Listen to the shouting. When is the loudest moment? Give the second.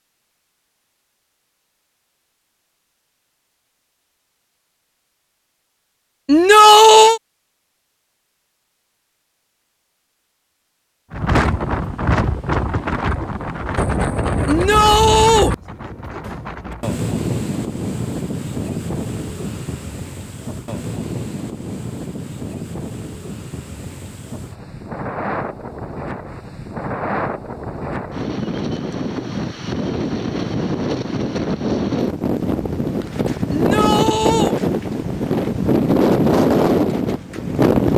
7 s.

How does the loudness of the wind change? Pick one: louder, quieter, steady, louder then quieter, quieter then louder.
quieter then louder.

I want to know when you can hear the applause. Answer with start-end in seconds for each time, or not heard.
not heard.